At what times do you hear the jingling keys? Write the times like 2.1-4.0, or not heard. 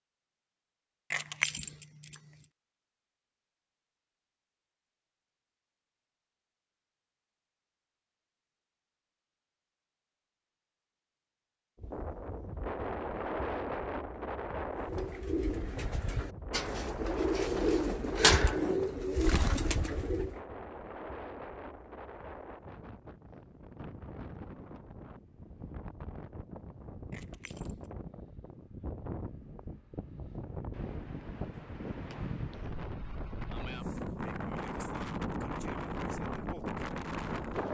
1.1-2.5, 27.1-27.9.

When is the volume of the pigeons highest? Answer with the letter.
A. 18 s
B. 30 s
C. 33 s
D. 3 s
A.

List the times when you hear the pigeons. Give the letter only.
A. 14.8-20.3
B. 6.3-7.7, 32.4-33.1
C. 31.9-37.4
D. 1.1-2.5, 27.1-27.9
A.